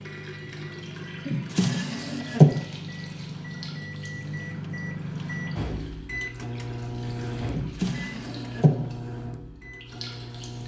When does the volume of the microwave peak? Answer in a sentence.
The loudest moment of the microwave is at 5 seconds.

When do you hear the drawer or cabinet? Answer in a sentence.
The drawer or cabinet can be heard from 1.2 to 2.5 s and from 7.5 to 8.8 s.